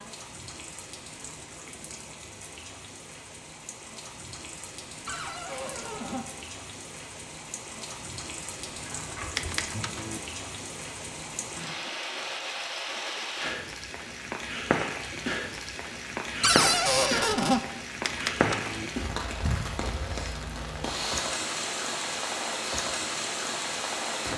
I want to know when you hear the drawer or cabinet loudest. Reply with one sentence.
The loudest moment of the drawer or cabinet is at 17 seconds.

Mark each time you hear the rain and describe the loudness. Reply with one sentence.
You can hear the rain from 0.0 to 24.3 s, getting louder.